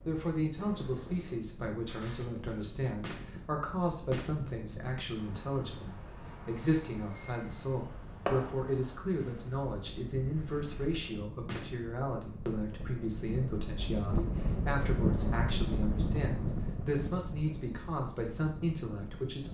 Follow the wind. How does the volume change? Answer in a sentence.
The volume of the wind goes up.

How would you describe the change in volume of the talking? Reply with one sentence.
The loudness of the talking stays about the same.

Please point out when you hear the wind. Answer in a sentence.
The wind can be heard from 0.0 to 19.4 s.